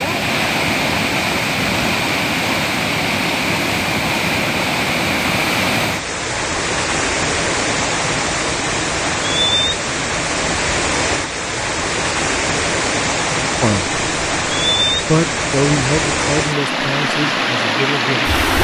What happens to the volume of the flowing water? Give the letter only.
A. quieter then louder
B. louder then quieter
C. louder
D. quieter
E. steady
E.